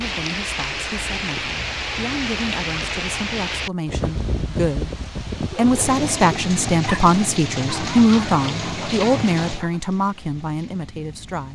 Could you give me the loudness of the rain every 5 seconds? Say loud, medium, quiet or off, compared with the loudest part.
loud, loud, quiet.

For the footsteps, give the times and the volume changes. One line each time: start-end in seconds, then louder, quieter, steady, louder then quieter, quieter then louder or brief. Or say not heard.
not heard.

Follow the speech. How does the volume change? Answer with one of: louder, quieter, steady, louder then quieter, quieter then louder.
louder then quieter.